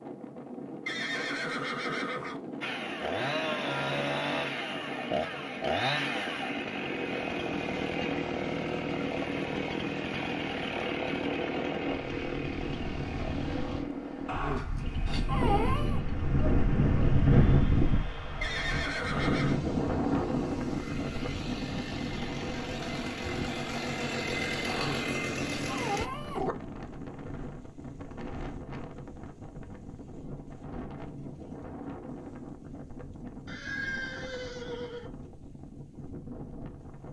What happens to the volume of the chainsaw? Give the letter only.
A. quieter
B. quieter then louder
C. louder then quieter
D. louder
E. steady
B.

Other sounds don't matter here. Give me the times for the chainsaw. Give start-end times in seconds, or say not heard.
2.6-26.1.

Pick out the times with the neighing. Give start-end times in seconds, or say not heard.
0.8-2.4, 18.4-19.6, 33.5-35.1.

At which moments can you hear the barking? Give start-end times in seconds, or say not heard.
14.2-16.1, 24.6-26.6.